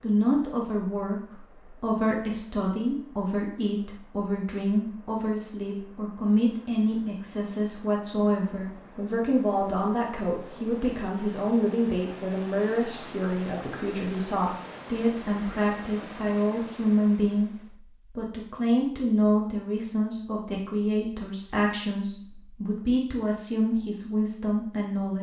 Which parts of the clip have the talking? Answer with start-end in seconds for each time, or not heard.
0.0-25.1.